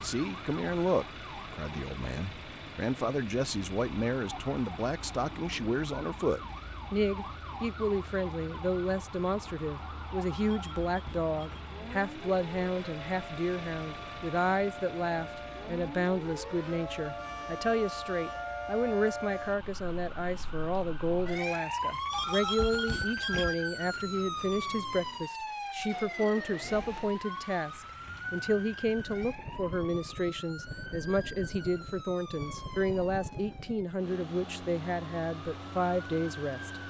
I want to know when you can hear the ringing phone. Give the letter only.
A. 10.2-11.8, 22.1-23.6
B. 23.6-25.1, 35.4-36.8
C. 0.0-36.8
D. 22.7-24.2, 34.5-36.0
A.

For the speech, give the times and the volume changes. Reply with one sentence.
The speech can be heard from 0.0 to 36.8 s, at a steady volume.